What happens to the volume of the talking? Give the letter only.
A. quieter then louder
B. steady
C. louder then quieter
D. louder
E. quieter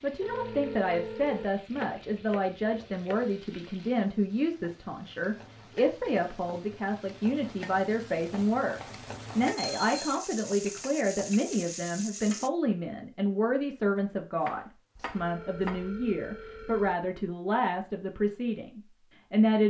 B.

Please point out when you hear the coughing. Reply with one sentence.
You can't hear the coughing here.